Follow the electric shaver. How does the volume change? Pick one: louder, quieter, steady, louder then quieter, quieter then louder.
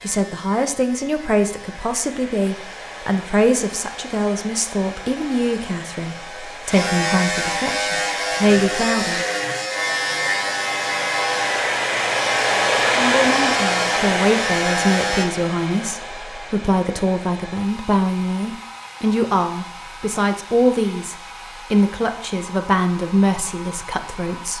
louder.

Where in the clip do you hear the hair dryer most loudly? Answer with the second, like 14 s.
13 s.